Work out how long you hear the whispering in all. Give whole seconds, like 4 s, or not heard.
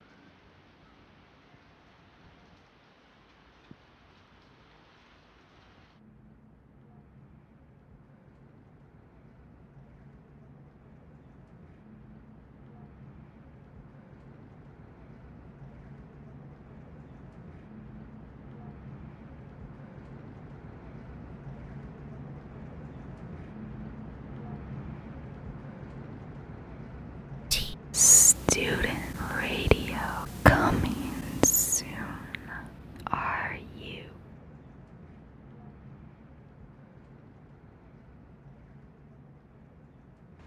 7 s.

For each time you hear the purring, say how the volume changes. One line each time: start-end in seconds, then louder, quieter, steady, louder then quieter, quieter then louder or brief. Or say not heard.
not heard.